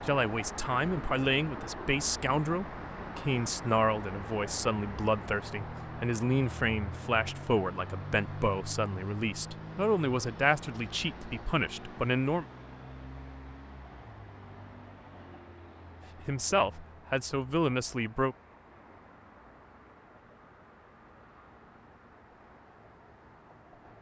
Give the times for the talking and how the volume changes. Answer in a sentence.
You can hear the talking from 0.1 to 12.4 s, at a steady volume; and briefly from 16.2 to 18.4 s.